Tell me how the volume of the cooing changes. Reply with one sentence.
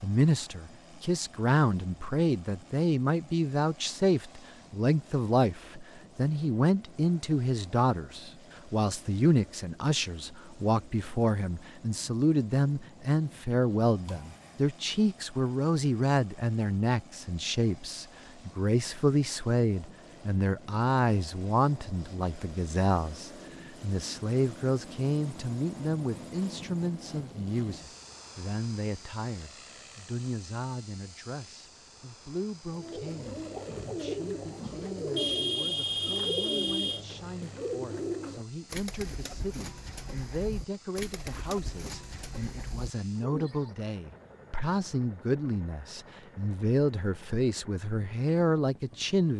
The loudness of the cooing goes down.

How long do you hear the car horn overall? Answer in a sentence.
The car horn can be heard for 2 seconds in total.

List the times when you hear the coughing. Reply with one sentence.
The coughing can't be heard in this clip.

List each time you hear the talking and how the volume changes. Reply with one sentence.
The talking can be heard from 0.0 to 49.3 s, getting quieter then louder.